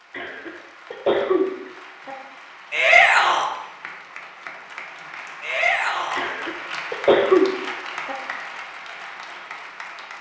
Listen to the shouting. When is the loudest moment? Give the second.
3 s.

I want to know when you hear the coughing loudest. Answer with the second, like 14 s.
7 s.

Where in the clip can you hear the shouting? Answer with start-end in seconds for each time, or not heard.
2.7-3.5, 5.4-6.2.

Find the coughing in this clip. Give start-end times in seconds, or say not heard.
0.1-2.1, 6.2-8.2.